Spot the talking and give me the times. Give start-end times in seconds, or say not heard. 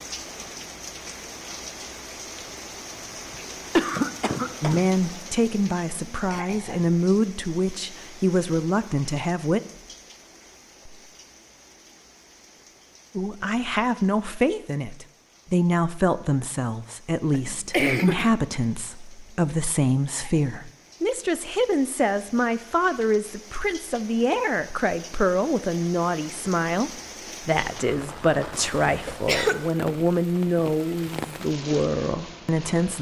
4.6-9.6, 13.2-32.9.